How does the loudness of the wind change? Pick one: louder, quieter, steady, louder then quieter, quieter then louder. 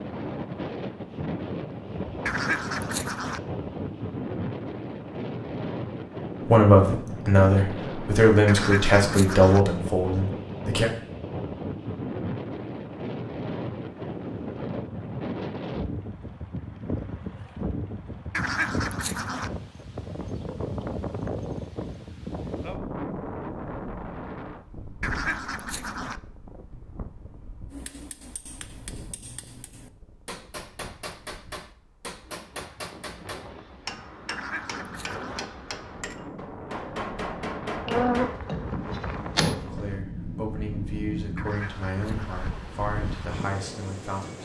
quieter then louder.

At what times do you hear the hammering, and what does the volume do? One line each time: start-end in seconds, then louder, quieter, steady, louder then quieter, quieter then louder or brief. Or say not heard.
27.7-39.6 louder.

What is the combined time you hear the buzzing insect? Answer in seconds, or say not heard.
2 s.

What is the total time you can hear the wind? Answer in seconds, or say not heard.
44 s.